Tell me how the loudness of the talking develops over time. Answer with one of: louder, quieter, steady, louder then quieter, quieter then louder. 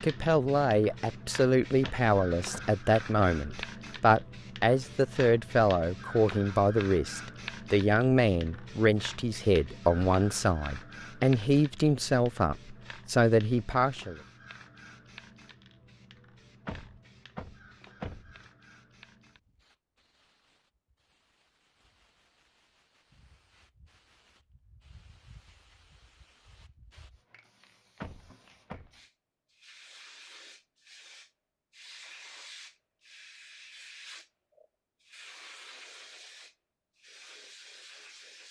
steady.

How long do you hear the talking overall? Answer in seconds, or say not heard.
14 s.